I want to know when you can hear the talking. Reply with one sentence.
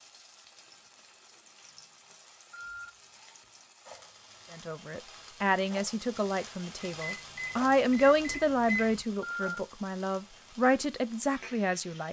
The talking can be heard from 4.5 to 12.0 s.